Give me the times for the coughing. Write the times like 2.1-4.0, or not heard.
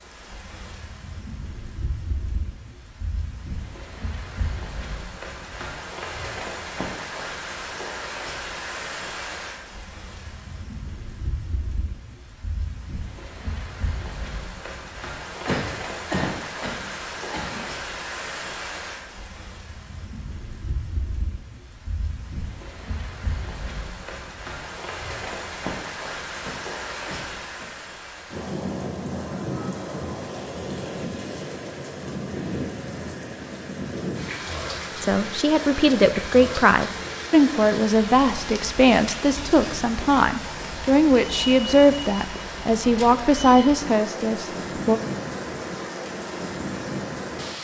15.4-17.6, 26.4-27.7.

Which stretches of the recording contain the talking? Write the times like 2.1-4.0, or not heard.
35.0-45.0.